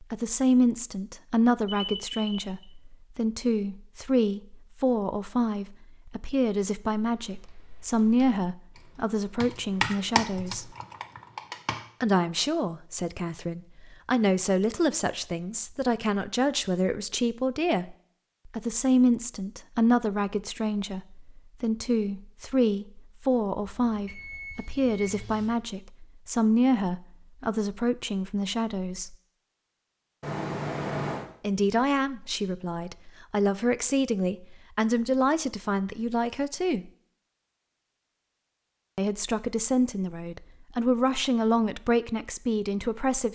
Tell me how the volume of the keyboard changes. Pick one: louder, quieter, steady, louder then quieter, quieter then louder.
louder then quieter.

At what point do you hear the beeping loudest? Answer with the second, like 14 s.
31 s.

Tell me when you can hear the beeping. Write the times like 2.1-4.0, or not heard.
1.6-2.6, 23.9-25.6, 30.2-31.2.